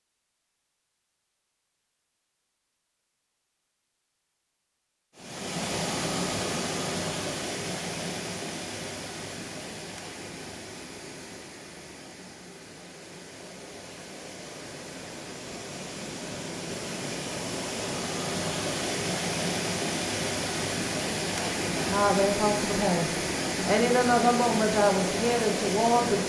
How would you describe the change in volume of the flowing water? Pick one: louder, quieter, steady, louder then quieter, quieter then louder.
quieter then louder.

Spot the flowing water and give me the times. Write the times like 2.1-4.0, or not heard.
5.2-26.2.